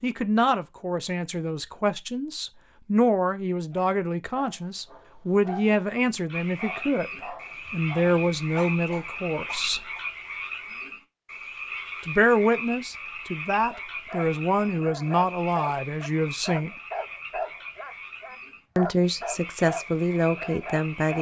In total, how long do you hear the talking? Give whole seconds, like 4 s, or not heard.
17 s.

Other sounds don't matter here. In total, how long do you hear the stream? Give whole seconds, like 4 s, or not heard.
not heard.